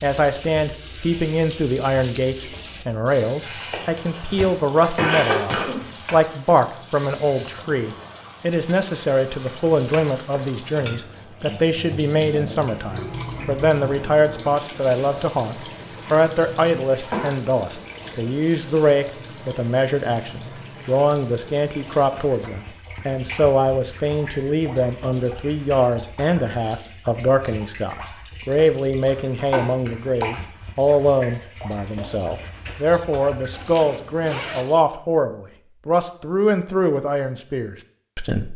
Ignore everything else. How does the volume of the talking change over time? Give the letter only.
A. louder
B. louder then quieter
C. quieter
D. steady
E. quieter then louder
D.